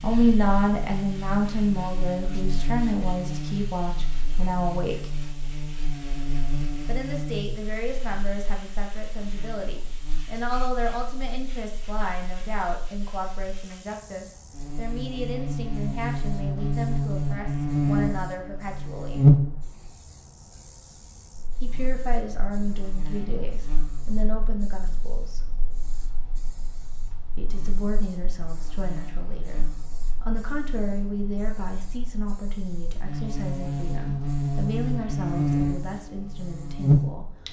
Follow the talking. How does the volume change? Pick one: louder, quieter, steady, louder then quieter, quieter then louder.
quieter.